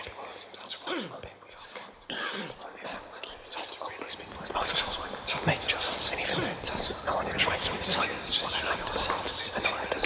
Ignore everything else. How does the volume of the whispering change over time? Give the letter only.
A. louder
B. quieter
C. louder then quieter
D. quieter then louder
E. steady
A.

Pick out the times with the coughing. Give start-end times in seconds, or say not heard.
0.8-2.6, 6.3-6.7.